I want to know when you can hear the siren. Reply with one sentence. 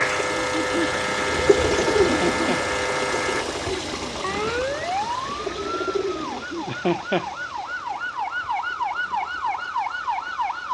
The siren can be heard from 0.0 to 10.6 s.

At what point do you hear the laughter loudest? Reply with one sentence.
The loudest moment of the laughter is at 7 seconds.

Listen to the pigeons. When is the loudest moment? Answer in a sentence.
The loudest moment of the pigeons is at 2 seconds.